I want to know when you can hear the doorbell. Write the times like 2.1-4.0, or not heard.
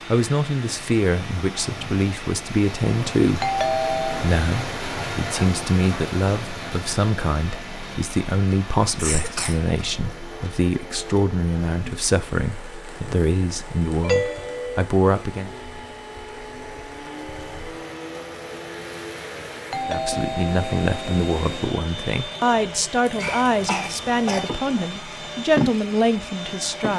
3.4-4.3, 14.0-14.8, 19.7-21.2.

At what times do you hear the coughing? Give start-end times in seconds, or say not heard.
8.9-9.6, 23.1-24.6.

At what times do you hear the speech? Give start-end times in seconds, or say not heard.
0.1-15.5, 19.9-26.9.